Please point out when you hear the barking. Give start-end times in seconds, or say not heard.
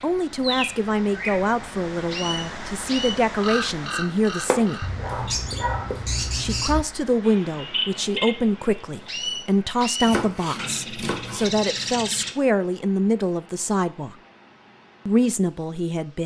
4.8-6.8.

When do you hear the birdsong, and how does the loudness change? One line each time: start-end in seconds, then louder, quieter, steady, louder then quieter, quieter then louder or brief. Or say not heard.
0.0-12.3 steady.